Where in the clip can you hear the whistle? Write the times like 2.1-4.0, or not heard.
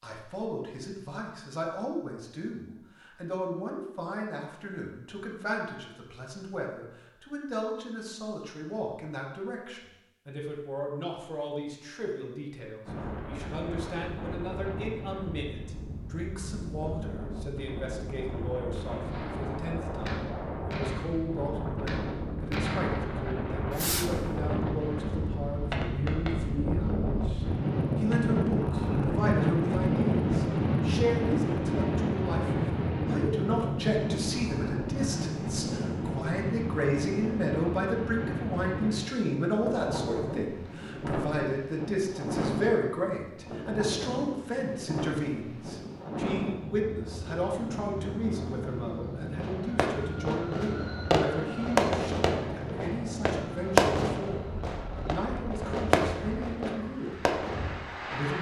not heard.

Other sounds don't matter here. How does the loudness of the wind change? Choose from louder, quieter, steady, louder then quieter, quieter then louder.
louder then quieter.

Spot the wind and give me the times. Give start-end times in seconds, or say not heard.
12.8-58.3.